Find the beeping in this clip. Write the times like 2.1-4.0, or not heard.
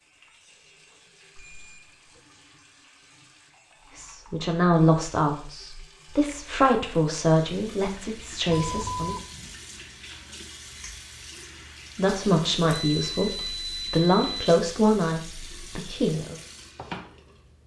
1.4-2.2, 8.4-9.2, 12.7-14.4.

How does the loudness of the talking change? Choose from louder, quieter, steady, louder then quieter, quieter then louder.
steady.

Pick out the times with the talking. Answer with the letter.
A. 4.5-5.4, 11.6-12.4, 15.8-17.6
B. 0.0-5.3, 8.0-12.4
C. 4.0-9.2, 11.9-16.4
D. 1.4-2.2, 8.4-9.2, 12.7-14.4
C.